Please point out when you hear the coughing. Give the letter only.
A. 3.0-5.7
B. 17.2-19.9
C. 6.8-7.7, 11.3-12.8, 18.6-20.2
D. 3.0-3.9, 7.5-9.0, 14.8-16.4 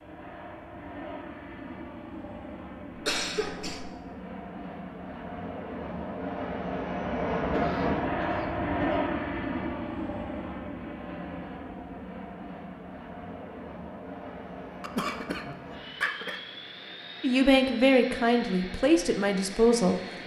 D.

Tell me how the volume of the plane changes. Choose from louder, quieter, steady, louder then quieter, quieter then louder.
louder then quieter.